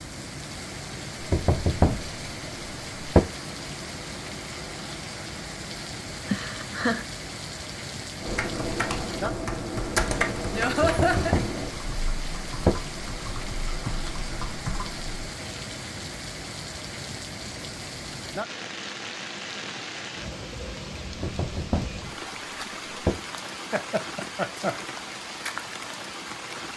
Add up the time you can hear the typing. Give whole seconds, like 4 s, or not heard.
7 s.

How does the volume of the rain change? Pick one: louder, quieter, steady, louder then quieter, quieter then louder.
steady.